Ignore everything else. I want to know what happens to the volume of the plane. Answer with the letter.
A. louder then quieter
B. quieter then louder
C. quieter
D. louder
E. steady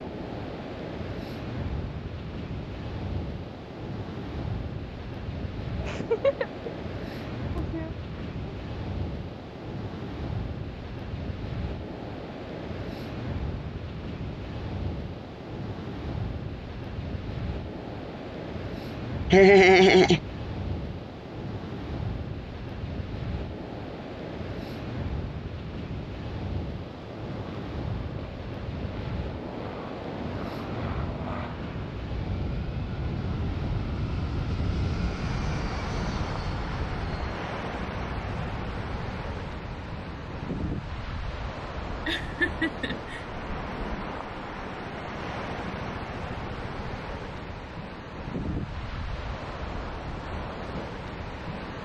A.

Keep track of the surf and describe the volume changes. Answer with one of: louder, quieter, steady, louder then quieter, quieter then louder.
steady.